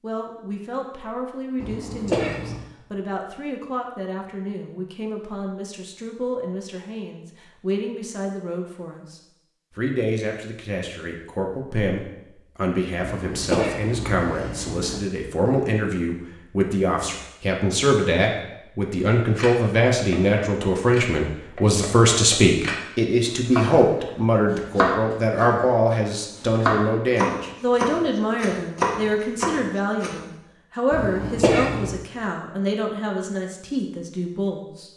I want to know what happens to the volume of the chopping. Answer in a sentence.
The volume of the chopping goes up.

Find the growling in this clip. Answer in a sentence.
The growling can't be heard in this clip.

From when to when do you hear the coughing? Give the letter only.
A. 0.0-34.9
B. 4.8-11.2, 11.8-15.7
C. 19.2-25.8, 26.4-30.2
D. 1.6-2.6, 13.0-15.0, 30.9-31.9
D.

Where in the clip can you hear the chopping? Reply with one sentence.
The chopping can be heard from 19.2 to 25.8 s and from 26.4 to 30.2 s.